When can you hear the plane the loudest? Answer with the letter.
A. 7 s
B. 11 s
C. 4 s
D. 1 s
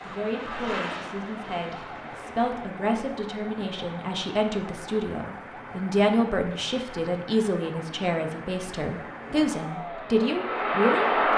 B.